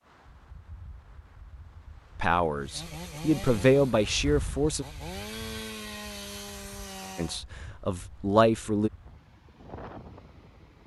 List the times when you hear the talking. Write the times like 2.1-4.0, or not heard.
2.1-4.8, 7.2-8.9.